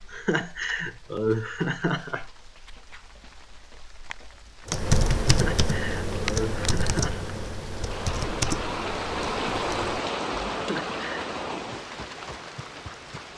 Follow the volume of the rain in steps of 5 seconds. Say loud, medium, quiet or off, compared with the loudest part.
quiet, loud, loud.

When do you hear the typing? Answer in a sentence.
You can hear the typing from 4.7 to 10.7 s.